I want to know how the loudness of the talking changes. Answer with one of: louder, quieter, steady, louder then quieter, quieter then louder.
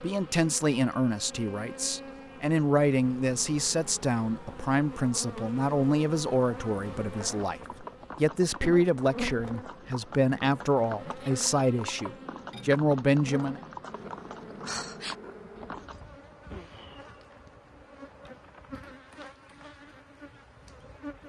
steady.